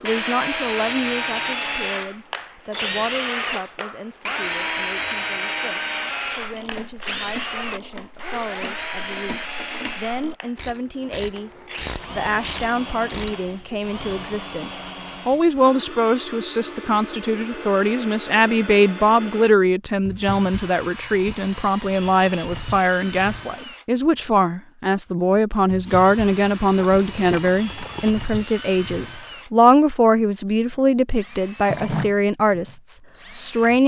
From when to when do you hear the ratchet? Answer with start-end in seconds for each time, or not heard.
6.3-13.8.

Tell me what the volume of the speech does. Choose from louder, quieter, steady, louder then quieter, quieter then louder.
louder.